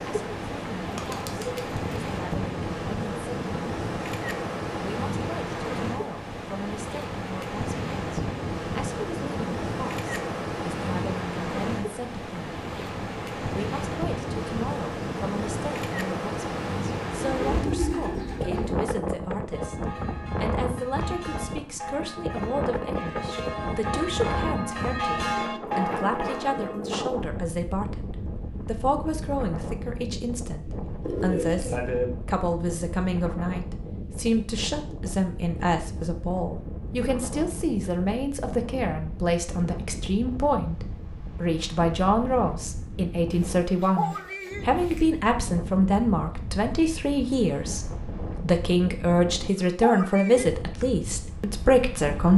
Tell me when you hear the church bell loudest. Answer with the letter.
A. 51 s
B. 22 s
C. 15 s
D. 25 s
D.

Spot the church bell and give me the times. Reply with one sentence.
You can hear the church bell from 19.5 to 26.8 s.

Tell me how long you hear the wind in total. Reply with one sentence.
You can hear the wind for 52 seconds altogether.